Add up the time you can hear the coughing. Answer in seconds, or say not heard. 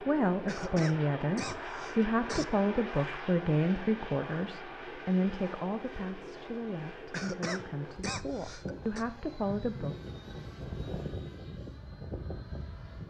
4 s.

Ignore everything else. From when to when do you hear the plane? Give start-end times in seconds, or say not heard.
0.0-13.0.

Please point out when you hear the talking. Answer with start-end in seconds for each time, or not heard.
0.1-9.9.